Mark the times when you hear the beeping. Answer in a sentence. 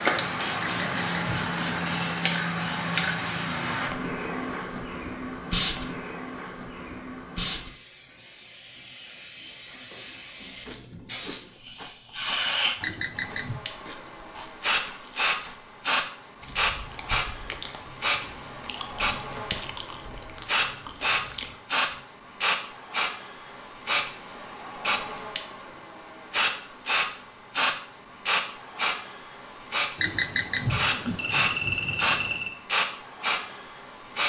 You can hear the beeping from 0.6 to 2.3 s, from 12.8 to 13.6 s and from 30.0 to 32.5 s.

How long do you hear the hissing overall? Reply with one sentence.
The hissing can be heard for 34 seconds in total.